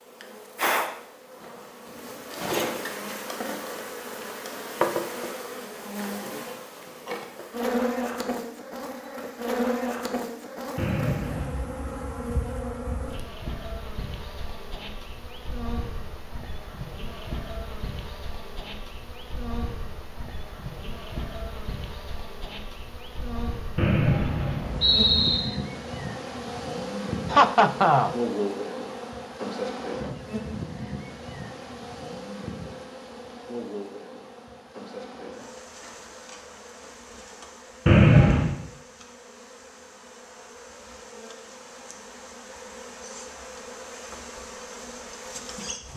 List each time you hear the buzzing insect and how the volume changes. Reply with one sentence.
You can hear the buzzing insect from 0.0 to 45.9 s, getting quieter.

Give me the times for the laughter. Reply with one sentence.
You can hear the laughter from 27.3 to 28.1 s.